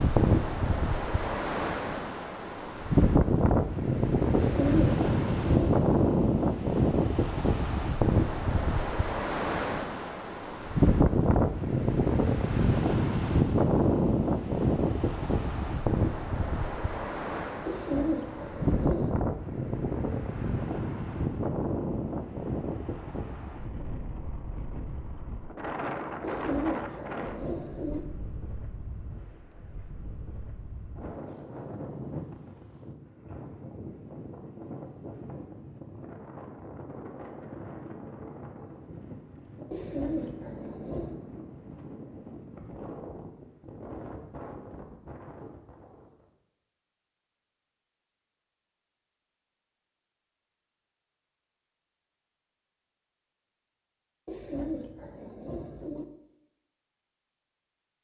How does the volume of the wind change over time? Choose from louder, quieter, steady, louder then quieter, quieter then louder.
quieter.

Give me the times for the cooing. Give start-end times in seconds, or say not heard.
4.3-5.9, 17.6-19.2, 26.2-28.1, 39.7-41.2, 54.2-56.0.